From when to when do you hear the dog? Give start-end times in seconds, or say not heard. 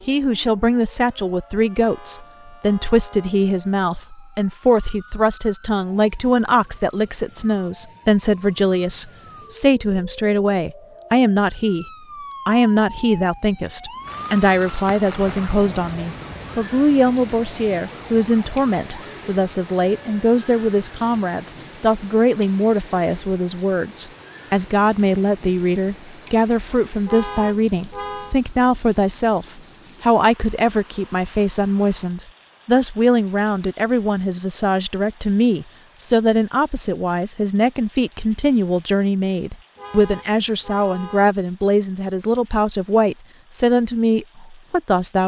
not heard.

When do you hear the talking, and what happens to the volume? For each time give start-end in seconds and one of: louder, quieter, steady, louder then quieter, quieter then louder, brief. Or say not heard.
0.1-11.8 steady
12.4-45.2 steady.